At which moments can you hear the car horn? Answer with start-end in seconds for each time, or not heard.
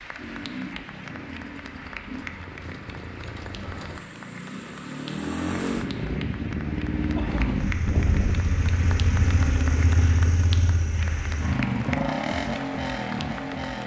not heard.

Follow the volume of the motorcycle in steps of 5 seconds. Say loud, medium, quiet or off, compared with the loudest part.
medium, loud, loud.